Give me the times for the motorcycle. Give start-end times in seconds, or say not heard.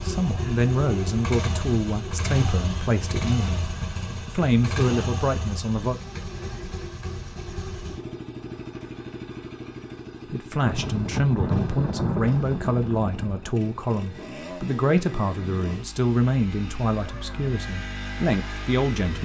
0.0-19.1.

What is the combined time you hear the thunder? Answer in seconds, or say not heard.
3 s.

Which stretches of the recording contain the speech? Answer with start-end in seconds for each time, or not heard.
0.0-3.6, 4.2-6.0, 10.3-19.1.